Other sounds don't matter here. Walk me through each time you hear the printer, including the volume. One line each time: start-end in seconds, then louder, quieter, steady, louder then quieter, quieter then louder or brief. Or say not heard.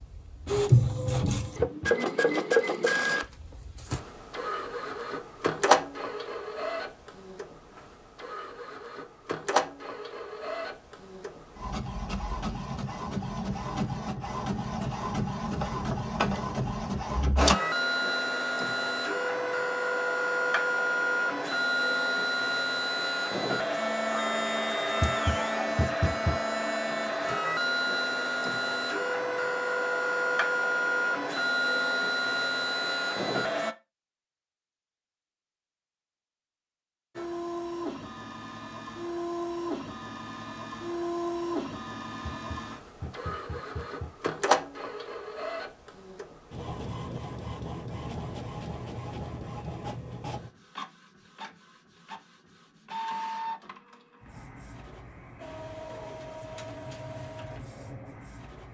0.0-33.8 quieter then louder
37.1-58.6 quieter.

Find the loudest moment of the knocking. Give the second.
26 s.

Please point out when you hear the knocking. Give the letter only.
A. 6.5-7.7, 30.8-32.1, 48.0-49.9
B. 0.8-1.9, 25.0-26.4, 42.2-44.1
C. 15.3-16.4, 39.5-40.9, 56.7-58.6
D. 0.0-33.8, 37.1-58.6
B.